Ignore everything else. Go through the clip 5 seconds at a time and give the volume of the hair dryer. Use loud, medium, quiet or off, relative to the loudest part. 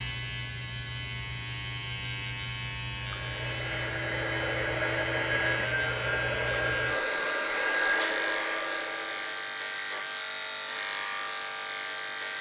loud, loud, off.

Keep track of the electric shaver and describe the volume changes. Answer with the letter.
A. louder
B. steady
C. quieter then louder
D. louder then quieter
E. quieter
B.